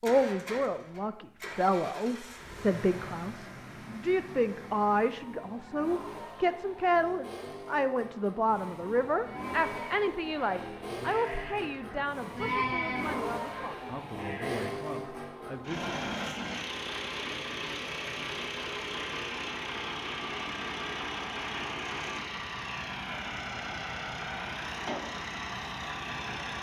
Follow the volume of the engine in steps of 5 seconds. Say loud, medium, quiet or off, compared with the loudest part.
medium, medium, loud, loud, loud, loud.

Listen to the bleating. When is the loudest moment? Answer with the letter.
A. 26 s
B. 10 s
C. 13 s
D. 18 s
C.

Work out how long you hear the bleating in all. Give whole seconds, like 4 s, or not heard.
6 s.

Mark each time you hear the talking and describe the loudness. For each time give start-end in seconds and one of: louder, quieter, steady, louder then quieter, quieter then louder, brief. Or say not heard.
0.0-15.9 quieter.